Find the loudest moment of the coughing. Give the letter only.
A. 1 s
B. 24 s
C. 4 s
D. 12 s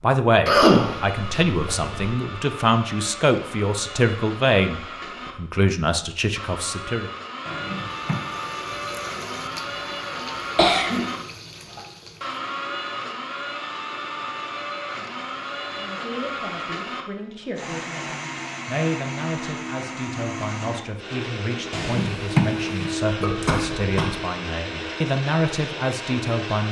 A.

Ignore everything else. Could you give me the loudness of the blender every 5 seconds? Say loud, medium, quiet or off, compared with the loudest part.
medium, loud, loud, loud, loud, loud.